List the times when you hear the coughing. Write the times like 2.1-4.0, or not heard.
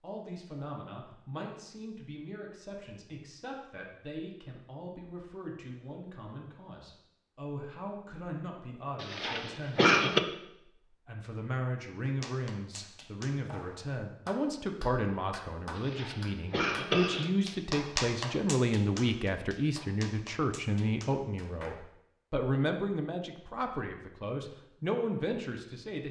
9.0-10.2, 15.8-17.3.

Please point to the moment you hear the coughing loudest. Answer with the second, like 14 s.
10 s.